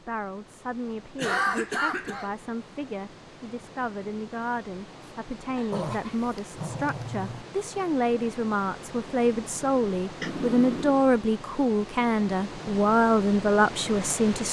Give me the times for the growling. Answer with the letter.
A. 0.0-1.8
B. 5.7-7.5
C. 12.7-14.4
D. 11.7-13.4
B.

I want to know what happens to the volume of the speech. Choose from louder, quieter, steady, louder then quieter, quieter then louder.
louder.